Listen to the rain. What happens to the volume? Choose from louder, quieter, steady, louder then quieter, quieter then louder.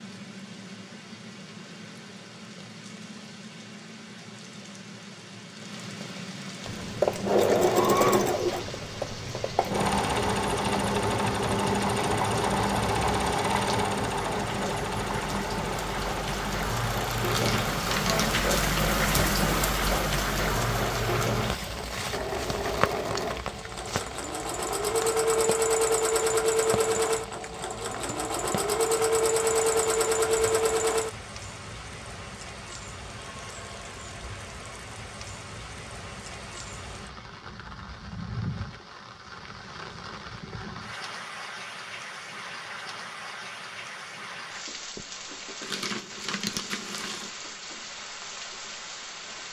louder then quieter.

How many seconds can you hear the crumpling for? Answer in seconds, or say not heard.
3 s.